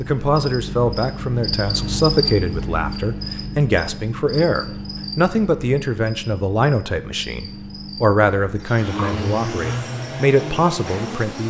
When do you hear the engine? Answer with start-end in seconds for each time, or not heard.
8.8-11.4.